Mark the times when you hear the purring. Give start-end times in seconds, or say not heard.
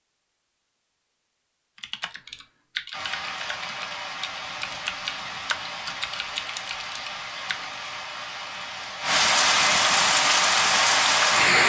not heard.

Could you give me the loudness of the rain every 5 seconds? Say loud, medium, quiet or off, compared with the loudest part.
quiet, medium, loud.